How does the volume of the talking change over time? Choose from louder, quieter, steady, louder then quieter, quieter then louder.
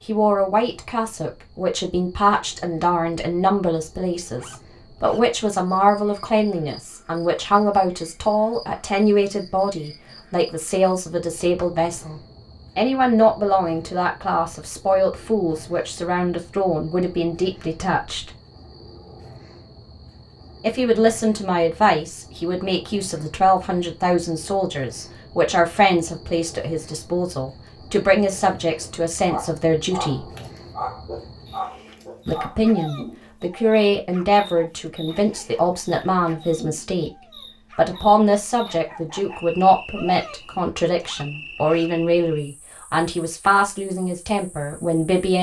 steady.